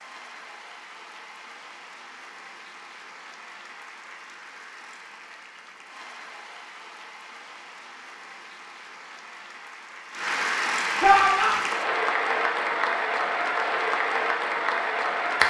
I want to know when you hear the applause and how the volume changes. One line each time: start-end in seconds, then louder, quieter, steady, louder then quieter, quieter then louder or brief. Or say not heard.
0.0-15.4 louder.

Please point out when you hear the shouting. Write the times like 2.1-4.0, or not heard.
11.0-11.7.